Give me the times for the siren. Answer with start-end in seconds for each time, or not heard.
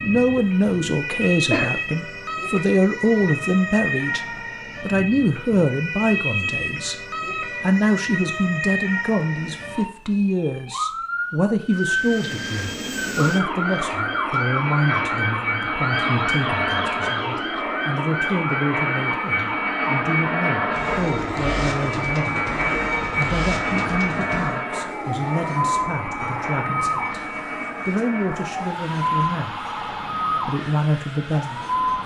0.0-32.0.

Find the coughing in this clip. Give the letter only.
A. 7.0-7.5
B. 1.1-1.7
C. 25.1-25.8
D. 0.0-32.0
B.